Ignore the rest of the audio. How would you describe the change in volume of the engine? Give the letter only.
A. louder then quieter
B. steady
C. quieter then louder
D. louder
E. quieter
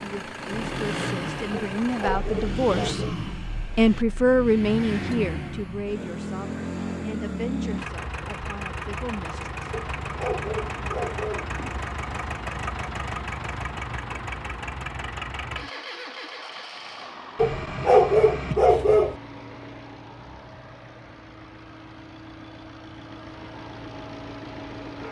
E.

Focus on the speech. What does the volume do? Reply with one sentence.
The loudness of the speech goes up, then down.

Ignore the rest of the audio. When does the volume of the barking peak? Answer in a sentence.
The loudest moment of the barking is at 18 seconds.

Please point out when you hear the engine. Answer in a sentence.
The engine can be heard from 0.0 to 25.0 s.